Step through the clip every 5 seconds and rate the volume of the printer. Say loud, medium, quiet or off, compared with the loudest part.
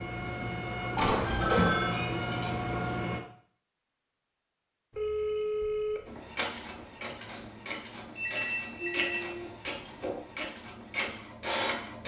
loud, medium, medium.